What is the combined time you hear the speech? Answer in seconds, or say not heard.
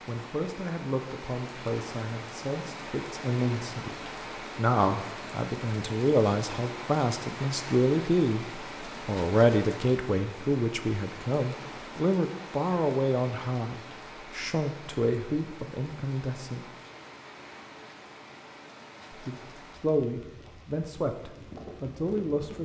20 s.